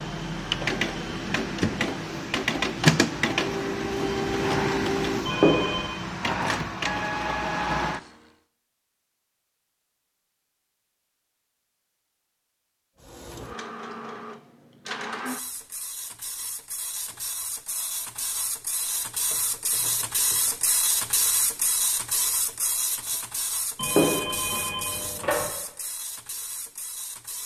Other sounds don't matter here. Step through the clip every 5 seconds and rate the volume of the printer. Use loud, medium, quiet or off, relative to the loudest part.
loud, loud, quiet, medium, medium, quiet.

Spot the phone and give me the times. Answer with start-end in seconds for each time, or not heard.
5.2-6.0, 23.8-25.4.